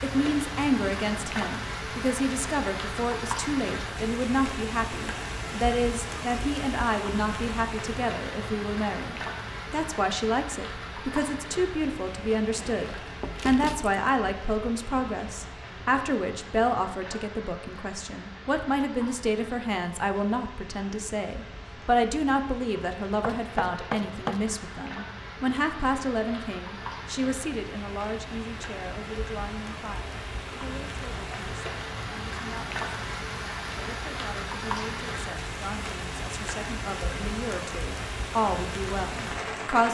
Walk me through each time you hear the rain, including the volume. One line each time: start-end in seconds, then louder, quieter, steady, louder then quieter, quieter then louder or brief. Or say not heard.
0.0-39.8 quieter then louder.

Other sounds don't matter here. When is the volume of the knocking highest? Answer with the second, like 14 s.
24 s.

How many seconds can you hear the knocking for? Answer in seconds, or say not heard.
2 s.